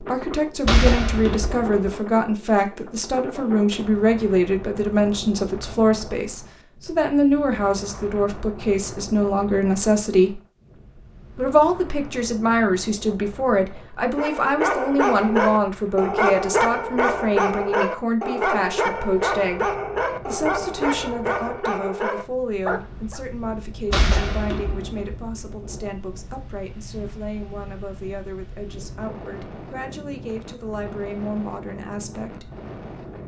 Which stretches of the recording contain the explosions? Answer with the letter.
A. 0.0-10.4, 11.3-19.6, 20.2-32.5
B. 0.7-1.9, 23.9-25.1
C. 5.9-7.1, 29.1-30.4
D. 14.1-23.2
B.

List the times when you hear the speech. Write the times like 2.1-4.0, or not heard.
0.0-10.4, 11.3-19.6, 20.2-32.5.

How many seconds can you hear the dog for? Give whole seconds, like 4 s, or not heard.
9 s.